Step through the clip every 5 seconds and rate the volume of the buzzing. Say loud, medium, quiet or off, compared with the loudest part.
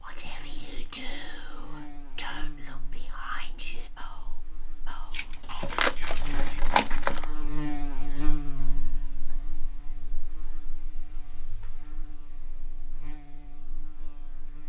medium, loud, quiet.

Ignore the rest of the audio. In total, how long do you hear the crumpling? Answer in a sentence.
The crumpling can be heard for 2 seconds in total.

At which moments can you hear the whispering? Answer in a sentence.
The whispering can be heard from 0.0 to 7.5 s.